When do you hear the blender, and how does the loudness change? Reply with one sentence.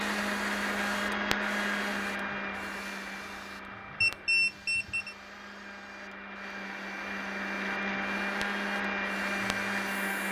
The blender can be heard from 0.0 to 10.2 s, getting quieter then louder.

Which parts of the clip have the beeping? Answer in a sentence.
The beeping can be heard from 4.0 to 5.2 s.